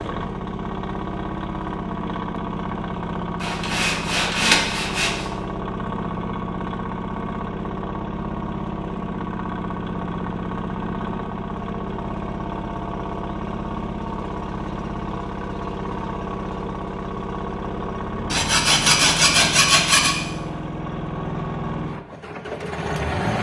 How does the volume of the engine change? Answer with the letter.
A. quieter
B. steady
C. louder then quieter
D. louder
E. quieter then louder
B.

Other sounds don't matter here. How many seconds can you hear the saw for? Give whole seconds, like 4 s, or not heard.
4 s.